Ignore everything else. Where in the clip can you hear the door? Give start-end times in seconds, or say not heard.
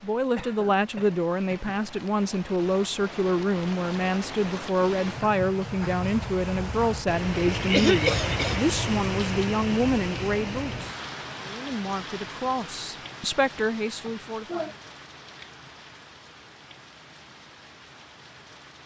not heard.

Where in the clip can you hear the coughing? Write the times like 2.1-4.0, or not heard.
0.3-1.8, 7.5-8.7, 14.1-14.8.